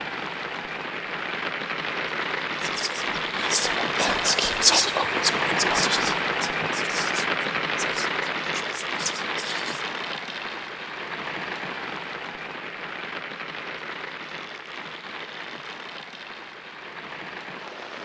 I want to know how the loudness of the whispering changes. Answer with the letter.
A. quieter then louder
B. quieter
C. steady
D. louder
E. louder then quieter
E.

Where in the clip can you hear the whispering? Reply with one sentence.
You can hear the whispering from 2.5 to 9.8 s.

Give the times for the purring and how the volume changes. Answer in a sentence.
The purring can't be heard in this clip.